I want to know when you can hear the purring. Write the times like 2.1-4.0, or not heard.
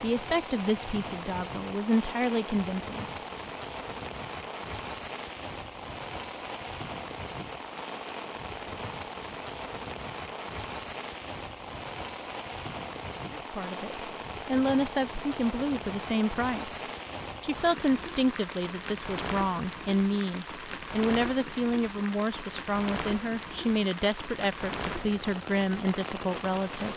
not heard.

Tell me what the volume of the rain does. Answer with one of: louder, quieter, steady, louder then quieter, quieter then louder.
steady.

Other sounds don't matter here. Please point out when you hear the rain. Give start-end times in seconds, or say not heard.
0.0-26.9.